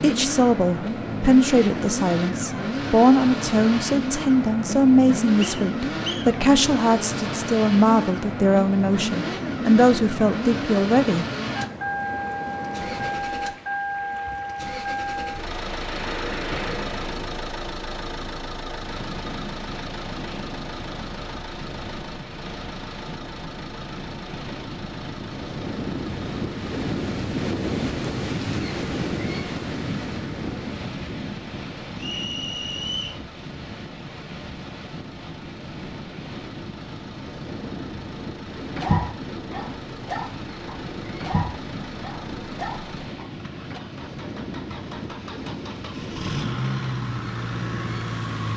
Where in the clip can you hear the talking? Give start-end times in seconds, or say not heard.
0.0-11.2.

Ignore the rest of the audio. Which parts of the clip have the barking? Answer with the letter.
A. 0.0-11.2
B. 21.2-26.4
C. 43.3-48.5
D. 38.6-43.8
D.